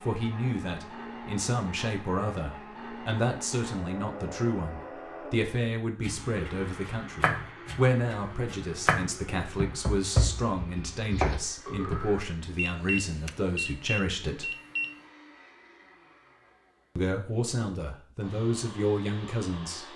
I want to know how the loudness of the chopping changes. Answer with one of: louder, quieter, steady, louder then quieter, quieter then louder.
quieter then louder.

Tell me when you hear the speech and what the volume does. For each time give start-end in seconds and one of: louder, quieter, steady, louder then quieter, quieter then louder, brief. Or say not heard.
0.0-14.5 steady
16.9-19.9 brief.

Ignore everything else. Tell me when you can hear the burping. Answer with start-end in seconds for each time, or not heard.
11.7-12.3.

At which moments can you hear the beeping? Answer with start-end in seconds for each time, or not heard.
12.6-14.9.